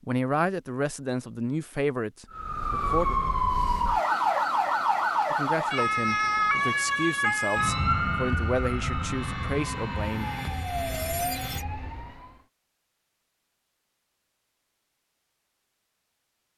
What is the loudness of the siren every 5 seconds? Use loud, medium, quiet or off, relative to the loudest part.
loud, loud, medium, off.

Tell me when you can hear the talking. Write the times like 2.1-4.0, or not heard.
0.0-3.1, 5.3-10.3.